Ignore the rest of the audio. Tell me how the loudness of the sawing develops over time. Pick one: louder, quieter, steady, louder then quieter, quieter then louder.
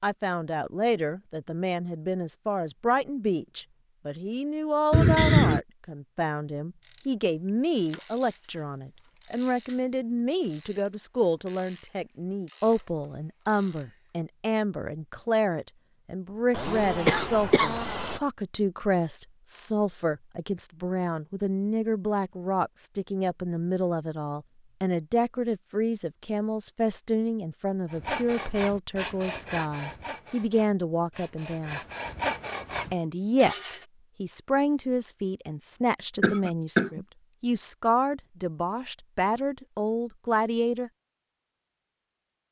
quieter then louder.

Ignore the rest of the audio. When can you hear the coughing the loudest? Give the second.
5 s.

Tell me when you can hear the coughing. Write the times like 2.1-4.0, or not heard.
4.9-5.6, 16.5-18.2, 36.2-37.0.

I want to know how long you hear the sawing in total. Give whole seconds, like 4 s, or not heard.
6 s.